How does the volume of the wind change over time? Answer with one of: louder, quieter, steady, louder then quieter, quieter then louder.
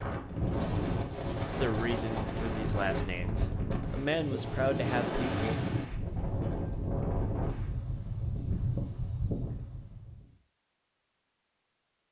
steady.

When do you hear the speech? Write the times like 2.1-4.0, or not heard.
1.6-5.6.